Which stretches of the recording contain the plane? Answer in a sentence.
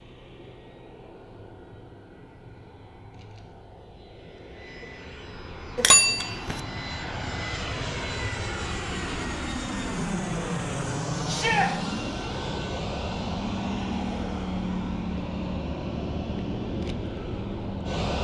The plane can be heard from 0.0 to 18.1 s.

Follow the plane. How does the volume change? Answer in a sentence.
The loudness of the plane goes up.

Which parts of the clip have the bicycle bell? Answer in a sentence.
You can hear the bicycle bell from 5.8 to 6.6 s.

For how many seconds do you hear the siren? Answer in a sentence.
The siren can't be heard in this clip.